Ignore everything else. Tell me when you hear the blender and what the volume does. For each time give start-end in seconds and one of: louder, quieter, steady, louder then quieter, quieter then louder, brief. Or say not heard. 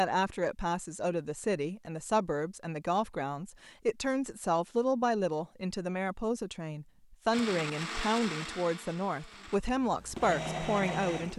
7.3-11.3 quieter then louder.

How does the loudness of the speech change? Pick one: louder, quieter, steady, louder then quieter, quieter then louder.
steady.